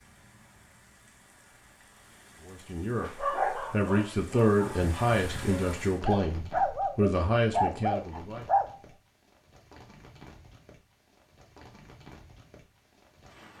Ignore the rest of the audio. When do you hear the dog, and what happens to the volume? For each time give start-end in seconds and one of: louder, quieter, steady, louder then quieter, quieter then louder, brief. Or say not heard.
3.0-8.7 quieter then louder.